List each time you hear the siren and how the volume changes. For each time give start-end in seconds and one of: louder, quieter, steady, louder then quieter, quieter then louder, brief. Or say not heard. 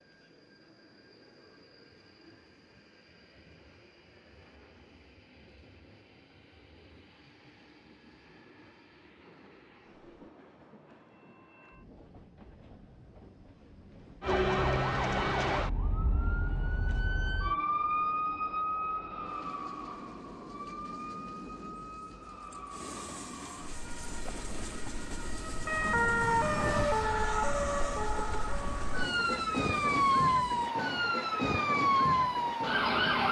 14.2-33.2 quieter then louder.